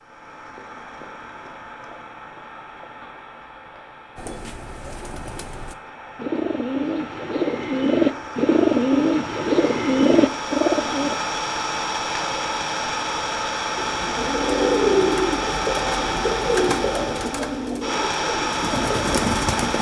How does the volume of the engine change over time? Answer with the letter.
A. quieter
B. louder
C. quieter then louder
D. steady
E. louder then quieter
B.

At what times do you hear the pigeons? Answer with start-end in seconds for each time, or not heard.
4.2-11.2, 13.8-19.7.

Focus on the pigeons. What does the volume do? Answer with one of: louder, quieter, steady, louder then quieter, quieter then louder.
louder then quieter.